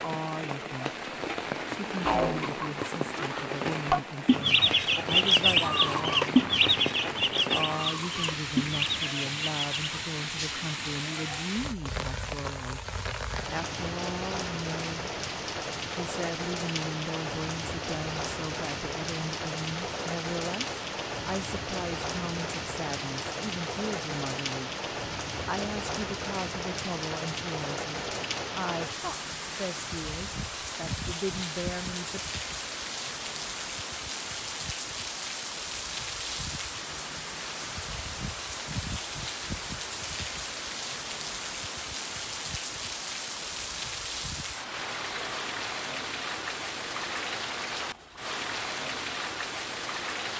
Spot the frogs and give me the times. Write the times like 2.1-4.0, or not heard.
not heard.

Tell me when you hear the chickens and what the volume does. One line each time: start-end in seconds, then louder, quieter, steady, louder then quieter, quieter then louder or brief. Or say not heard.
2.0-10.0 louder then quieter.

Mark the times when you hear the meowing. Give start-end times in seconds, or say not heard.
not heard.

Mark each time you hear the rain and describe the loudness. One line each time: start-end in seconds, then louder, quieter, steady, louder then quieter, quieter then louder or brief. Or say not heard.
0.0-50.3 steady.